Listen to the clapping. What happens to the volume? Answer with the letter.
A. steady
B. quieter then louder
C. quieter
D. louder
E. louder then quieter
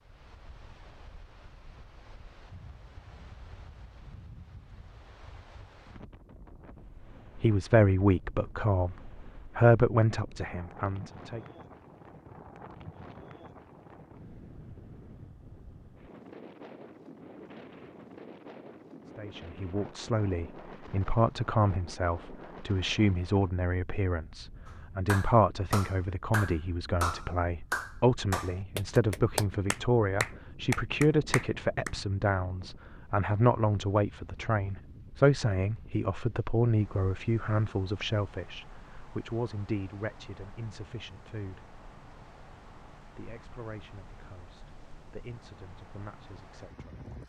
A.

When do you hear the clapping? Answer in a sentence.
The clapping can be heard from 24.6 to 31.9 s.